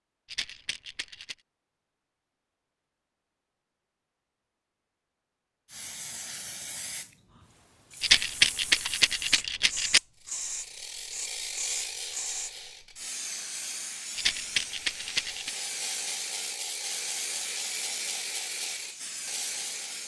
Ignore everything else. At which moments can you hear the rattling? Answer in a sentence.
You can hear the rattling from 0.2 to 1.4 s, from 8.0 to 10.0 s and from 14.2 to 15.6 s.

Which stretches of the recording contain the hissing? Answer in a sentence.
You can hear the hissing from 5.7 to 20.0 s.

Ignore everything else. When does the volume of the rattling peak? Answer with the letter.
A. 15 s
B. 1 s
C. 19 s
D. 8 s
D.